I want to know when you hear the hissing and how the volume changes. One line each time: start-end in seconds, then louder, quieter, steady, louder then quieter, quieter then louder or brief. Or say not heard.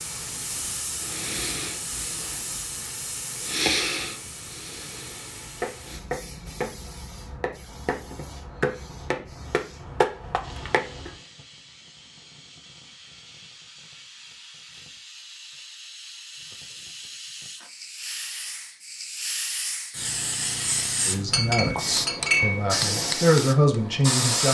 0.0-24.4 quieter then louder.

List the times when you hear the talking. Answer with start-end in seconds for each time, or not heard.
21.1-24.4.